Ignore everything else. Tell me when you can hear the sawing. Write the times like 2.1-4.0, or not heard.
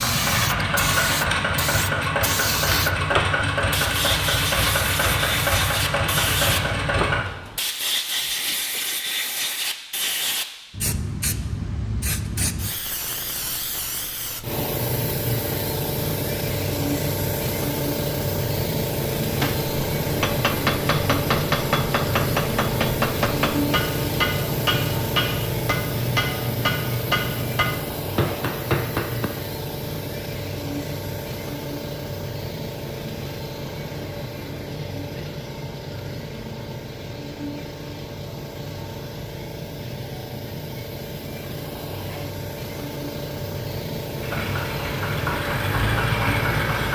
not heard.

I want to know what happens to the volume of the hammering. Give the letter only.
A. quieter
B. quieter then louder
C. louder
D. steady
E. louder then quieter
D.